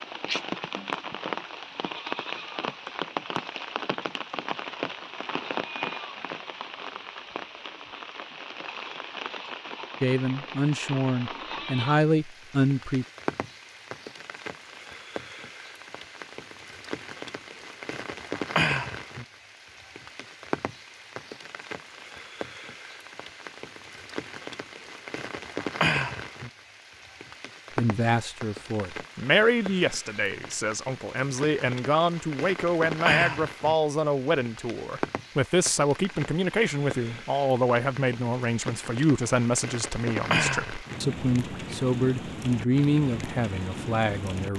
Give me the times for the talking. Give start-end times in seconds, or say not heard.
10.0-13.1, 27.8-44.5.